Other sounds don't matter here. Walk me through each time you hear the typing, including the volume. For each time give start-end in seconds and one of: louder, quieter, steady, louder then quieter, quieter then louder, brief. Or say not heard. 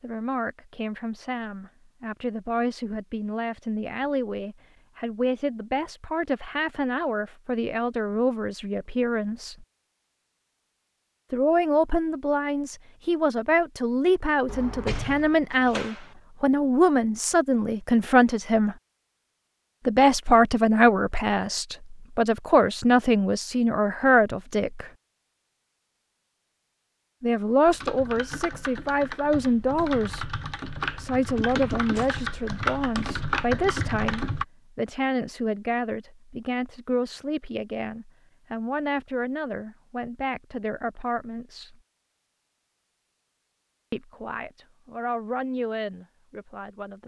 27.6-34.5 louder.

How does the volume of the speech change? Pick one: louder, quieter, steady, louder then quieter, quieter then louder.
louder then quieter.